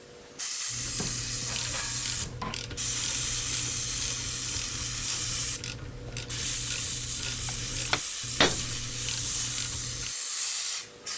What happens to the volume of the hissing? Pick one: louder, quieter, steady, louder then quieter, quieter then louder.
steady.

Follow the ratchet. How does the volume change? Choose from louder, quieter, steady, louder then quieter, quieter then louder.
steady.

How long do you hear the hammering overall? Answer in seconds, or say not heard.
3 s.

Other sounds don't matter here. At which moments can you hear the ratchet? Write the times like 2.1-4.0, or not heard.
0.7-10.2.